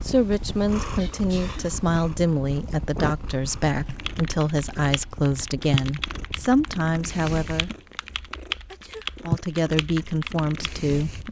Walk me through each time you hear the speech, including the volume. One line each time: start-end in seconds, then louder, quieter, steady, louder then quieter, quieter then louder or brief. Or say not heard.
0.0-7.7 steady
9.2-11.1 brief.